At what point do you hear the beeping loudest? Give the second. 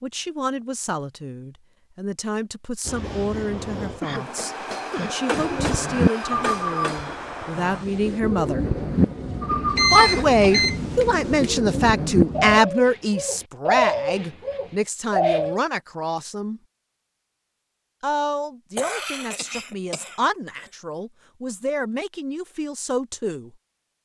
10 s.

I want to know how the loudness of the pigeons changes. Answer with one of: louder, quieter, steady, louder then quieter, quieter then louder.
quieter then louder.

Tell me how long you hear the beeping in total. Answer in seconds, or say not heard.
2 s.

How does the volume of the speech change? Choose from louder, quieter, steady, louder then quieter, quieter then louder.
louder then quieter.